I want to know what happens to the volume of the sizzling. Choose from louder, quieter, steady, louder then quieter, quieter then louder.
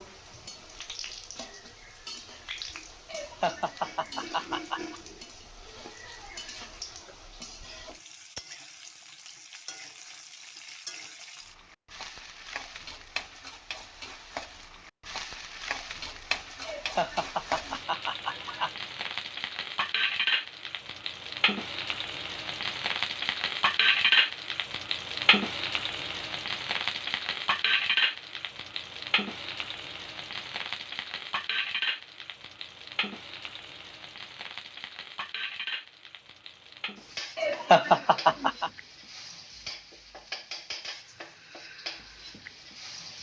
louder then quieter.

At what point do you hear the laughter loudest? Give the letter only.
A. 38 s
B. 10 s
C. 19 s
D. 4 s
A.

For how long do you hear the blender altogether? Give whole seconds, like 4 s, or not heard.
not heard.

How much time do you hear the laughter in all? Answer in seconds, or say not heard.
5 s.